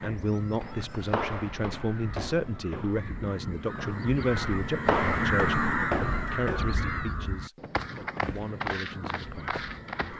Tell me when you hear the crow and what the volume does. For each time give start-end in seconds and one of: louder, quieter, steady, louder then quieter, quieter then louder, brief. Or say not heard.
0.0-10.1 louder then quieter.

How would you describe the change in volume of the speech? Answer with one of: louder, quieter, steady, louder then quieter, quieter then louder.
quieter.